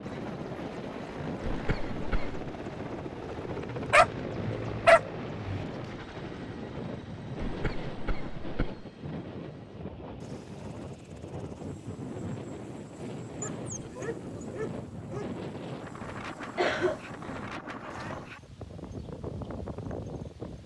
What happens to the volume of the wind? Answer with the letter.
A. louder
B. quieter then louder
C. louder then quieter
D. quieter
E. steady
E.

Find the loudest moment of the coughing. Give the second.
17 s.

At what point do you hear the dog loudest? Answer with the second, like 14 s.
5 s.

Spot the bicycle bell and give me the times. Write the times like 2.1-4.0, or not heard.
not heard.